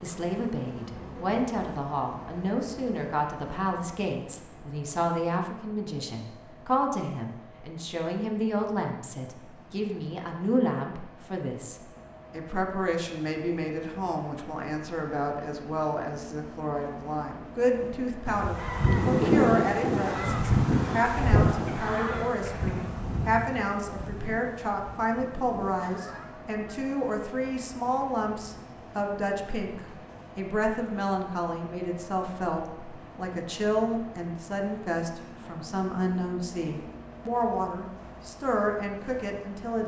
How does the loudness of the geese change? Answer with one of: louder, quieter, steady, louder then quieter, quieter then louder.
quieter.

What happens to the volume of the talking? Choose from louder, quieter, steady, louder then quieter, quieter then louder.
steady.